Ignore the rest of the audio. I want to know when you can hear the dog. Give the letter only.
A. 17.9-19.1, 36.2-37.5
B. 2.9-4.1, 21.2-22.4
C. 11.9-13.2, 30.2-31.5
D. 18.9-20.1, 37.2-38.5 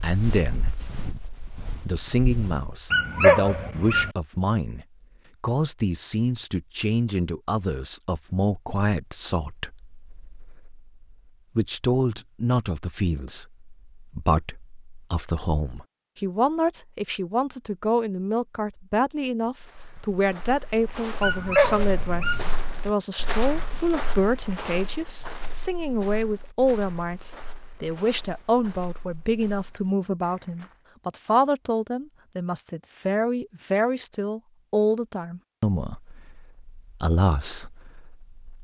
B.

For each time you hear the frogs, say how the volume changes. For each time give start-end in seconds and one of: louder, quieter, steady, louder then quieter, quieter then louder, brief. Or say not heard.
not heard.